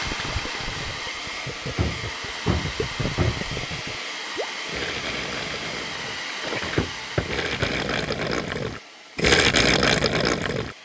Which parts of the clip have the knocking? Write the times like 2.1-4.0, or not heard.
1.8-3.5, 6.6-7.8.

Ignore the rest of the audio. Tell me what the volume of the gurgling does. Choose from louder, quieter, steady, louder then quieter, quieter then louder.
louder.